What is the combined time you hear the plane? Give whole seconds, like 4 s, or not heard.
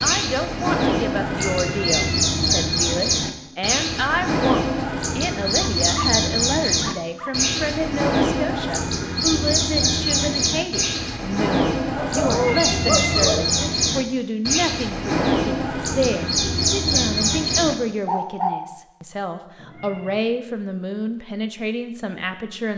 not heard.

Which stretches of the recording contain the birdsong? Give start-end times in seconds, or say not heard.
0.0-18.6.